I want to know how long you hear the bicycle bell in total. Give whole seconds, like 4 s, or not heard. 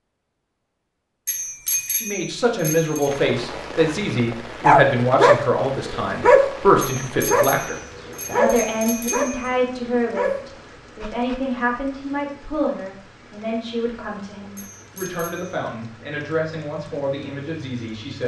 5 s.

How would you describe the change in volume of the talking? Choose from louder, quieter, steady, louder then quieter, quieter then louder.
quieter.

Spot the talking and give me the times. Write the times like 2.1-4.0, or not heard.
2.0-18.2.